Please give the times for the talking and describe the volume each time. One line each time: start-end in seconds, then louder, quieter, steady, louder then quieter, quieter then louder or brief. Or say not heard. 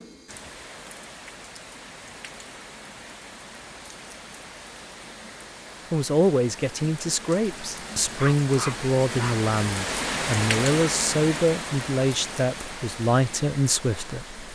5.9-14.4 steady.